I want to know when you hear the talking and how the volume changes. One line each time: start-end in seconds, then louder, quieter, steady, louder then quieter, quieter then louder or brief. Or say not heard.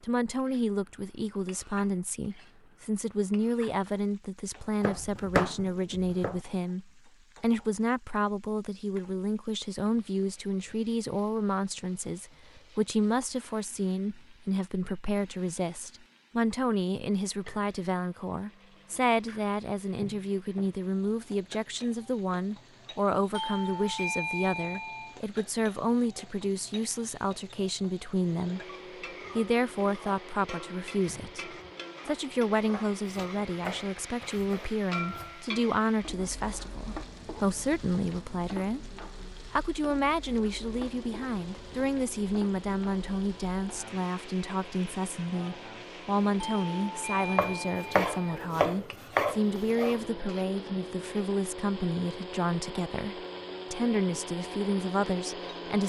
0.0-28.6 steady
29.4-55.8 steady.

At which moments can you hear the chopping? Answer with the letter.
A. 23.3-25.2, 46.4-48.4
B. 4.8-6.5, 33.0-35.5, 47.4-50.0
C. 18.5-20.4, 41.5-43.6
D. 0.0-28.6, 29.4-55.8
B.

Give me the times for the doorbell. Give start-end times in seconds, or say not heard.
23.3-25.2, 46.4-48.4.